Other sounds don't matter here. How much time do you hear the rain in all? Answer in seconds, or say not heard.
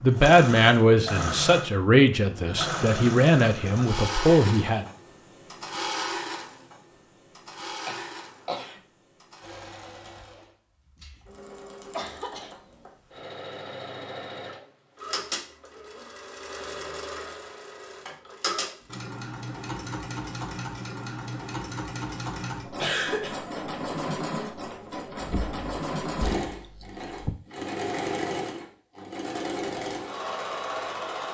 not heard.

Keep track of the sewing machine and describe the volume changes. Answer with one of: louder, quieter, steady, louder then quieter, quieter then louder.
quieter then louder.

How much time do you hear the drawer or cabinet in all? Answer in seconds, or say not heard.
2 s.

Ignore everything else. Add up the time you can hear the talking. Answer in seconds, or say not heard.
5 s.